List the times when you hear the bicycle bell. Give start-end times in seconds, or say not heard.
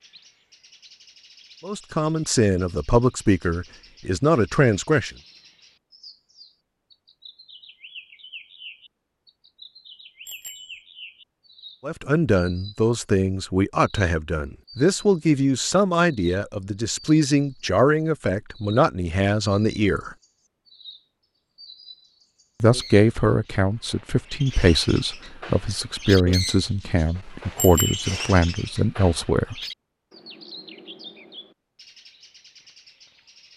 10.2-10.8, 27.6-28.1.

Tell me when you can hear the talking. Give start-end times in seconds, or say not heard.
1.6-5.1, 11.8-20.1, 22.6-29.6.